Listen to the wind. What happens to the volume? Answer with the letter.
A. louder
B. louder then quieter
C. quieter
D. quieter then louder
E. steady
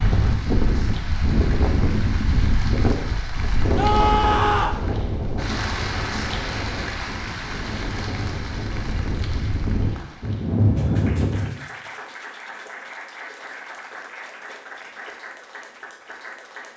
D.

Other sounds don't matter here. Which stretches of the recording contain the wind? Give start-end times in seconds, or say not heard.
0.0-11.5.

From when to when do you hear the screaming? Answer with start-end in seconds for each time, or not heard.
3.8-4.8.